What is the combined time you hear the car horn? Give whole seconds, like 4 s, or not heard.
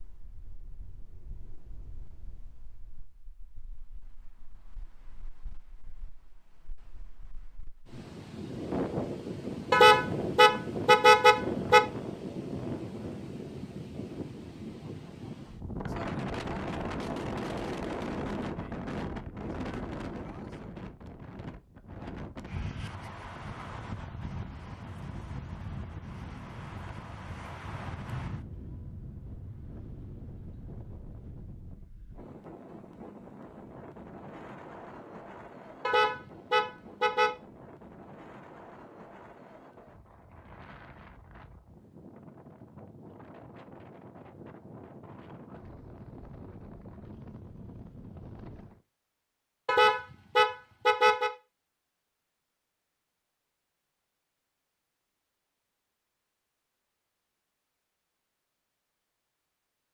5 s.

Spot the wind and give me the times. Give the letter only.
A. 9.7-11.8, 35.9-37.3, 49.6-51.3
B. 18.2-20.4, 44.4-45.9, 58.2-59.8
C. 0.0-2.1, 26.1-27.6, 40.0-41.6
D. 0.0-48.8
D.